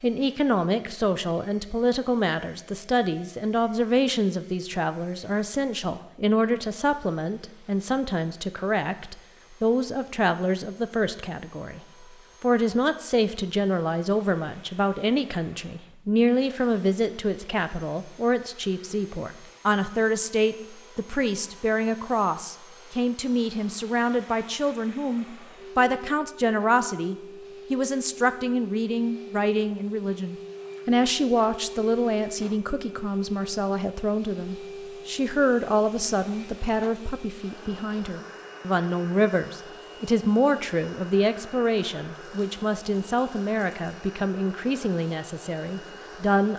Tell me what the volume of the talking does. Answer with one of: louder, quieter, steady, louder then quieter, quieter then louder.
steady.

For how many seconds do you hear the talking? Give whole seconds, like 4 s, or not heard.
46 s.